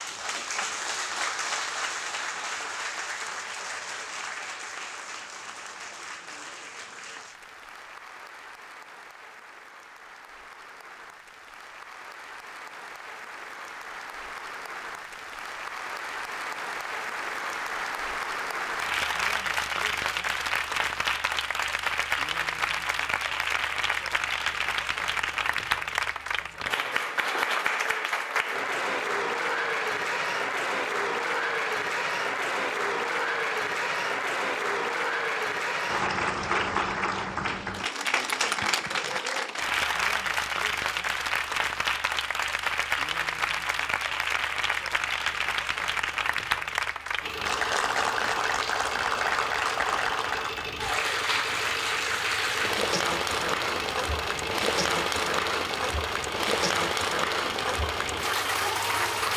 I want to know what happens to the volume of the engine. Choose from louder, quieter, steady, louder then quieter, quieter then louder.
steady.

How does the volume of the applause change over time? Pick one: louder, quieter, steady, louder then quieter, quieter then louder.
louder.